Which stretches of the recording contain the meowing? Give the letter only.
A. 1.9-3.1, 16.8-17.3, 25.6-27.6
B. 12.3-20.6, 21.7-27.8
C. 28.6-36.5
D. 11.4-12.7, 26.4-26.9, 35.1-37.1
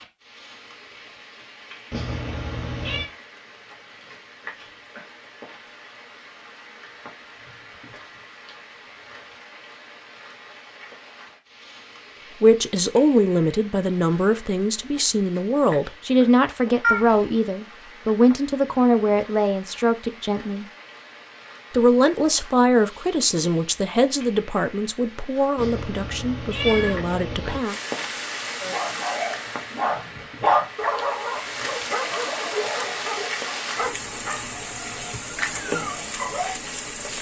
A.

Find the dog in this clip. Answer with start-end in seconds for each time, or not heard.
28.6-36.5.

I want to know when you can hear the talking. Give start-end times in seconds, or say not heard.
12.3-20.6, 21.7-27.8.